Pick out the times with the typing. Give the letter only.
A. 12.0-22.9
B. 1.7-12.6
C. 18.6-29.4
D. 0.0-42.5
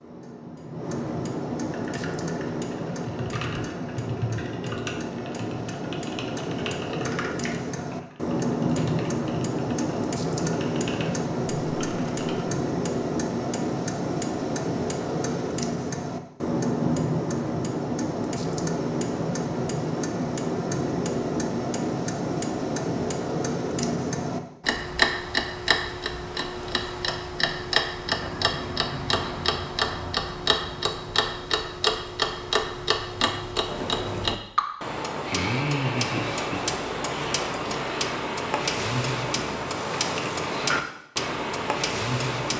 B.